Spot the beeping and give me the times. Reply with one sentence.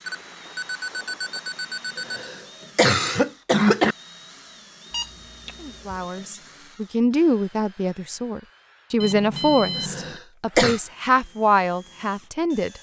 You can hear the beeping from 0.0 to 2.3 s, from 4.9 to 6.0 s and from 9.0 to 10.2 s.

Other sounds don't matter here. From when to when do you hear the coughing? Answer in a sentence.
The coughing can be heard from 1.9 to 4.0 s and from 9.8 to 10.8 s.